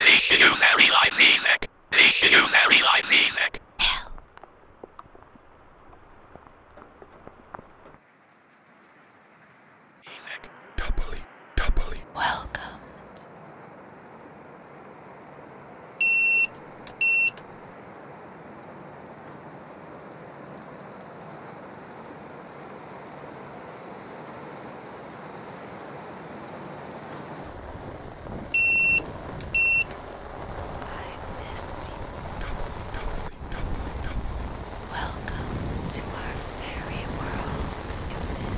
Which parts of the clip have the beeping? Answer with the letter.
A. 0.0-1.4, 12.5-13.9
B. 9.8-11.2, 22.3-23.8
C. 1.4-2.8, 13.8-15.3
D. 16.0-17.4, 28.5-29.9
D.